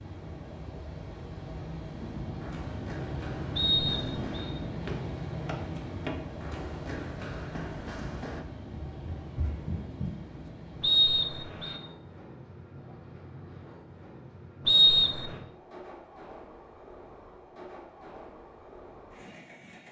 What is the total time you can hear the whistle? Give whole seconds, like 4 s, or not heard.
3 s.